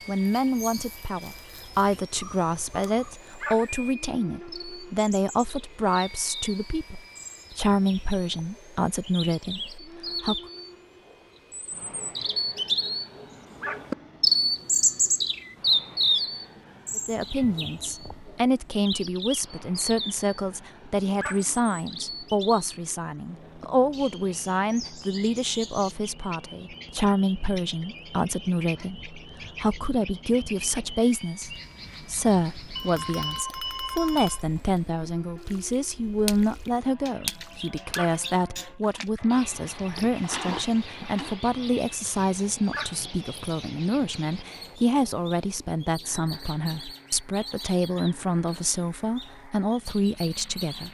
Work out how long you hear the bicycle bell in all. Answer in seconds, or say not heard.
2 s.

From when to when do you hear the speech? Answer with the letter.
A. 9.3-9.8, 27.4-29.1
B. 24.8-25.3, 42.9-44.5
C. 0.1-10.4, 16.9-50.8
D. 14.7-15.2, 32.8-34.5
C.